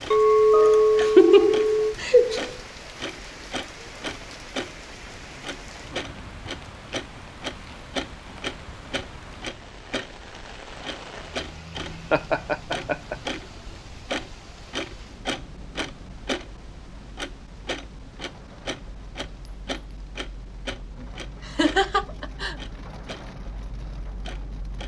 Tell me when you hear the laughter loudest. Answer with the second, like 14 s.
1 s.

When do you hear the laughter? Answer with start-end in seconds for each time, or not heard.
0.5-2.5, 12.1-13.2, 21.4-22.6.